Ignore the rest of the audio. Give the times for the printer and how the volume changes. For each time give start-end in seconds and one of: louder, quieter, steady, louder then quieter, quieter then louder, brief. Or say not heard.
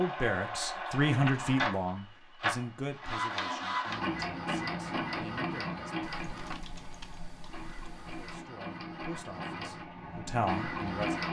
0.0-11.2 quieter then louder.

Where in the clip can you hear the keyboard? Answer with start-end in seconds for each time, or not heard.
6.0-8.4.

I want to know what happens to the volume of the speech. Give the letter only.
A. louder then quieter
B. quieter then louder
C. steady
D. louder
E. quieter
B.